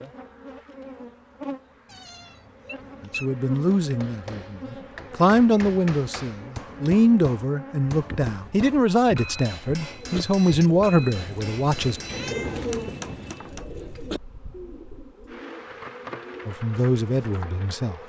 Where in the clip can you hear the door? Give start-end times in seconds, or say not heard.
not heard.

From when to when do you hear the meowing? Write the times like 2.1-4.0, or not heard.
1.9-3.3, 12.1-13.3.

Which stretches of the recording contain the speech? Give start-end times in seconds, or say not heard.
3.0-12.0, 16.4-18.0.